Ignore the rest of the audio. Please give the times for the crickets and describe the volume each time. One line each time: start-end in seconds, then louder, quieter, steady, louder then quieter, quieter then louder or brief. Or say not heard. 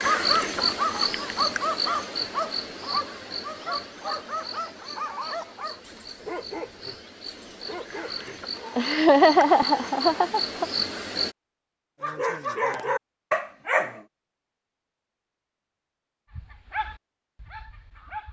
0.0-11.3 quieter then louder.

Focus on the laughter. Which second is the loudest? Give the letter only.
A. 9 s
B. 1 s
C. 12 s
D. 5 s
A.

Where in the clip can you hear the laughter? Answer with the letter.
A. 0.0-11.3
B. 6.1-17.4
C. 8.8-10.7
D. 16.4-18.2
C.